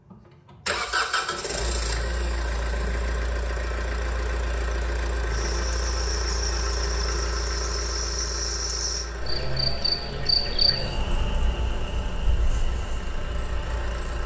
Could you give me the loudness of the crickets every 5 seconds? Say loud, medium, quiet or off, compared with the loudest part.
off, loud, loud.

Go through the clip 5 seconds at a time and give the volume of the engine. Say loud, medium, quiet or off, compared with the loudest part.
loud, loud, medium.